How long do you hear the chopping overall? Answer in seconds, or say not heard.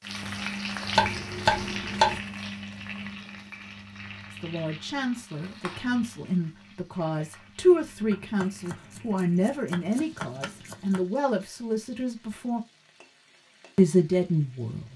4 s.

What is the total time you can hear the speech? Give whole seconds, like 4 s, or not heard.
9 s.